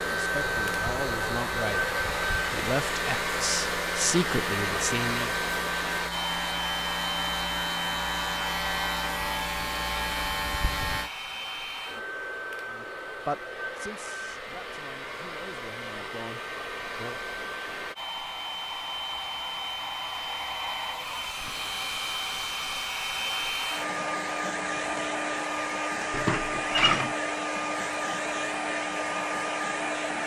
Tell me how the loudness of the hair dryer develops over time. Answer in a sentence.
The volume of the hair dryer goes down, then up.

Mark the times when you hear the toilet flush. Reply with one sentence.
You can hear the toilet flush from 26.1 to 27.1 s.